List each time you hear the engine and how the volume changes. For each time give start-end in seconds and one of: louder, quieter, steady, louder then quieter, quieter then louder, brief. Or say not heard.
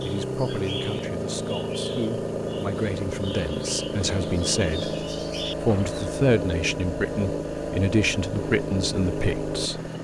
0.0-9.9 steady.